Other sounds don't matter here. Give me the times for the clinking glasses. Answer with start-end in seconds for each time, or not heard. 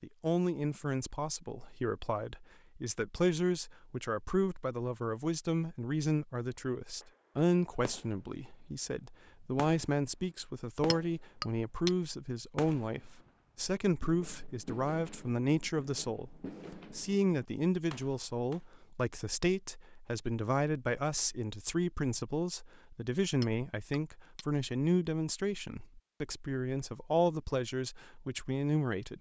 10.9-11.9, 23.4-24.4.